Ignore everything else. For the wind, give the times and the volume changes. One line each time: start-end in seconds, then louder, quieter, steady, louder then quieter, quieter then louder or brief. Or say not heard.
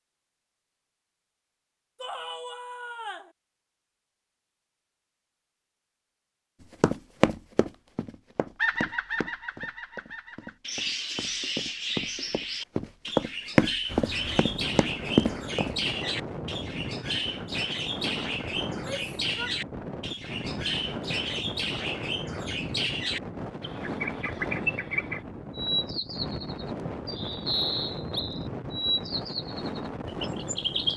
13.8-30.9 steady.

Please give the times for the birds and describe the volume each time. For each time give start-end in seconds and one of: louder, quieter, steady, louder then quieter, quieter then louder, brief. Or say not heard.
8.6-30.9 steady.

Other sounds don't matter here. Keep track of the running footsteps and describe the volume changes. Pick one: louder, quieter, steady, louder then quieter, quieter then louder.
quieter then louder.